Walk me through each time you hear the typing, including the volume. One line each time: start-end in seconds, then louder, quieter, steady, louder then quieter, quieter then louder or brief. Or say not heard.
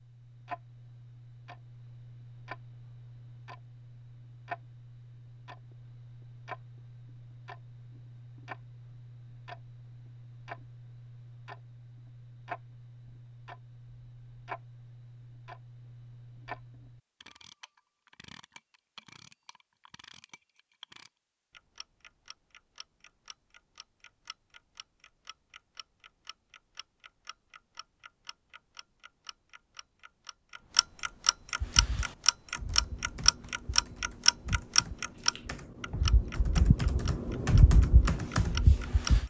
31.6-39.2 louder.